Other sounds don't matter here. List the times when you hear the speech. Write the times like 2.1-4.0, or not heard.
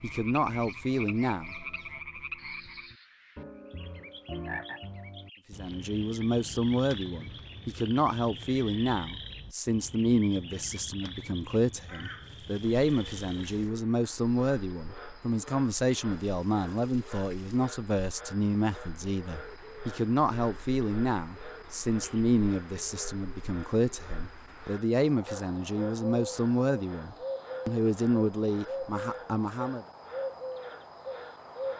0.0-1.6, 5.5-29.9.